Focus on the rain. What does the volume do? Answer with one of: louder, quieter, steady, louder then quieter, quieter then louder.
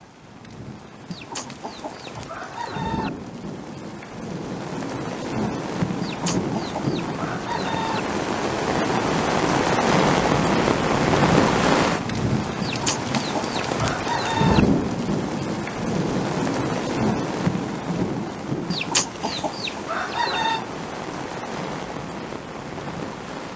louder then quieter.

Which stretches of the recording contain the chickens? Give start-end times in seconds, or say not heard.
1.1-3.1, 6.0-8.0, 12.6-14.7, 18.6-20.6.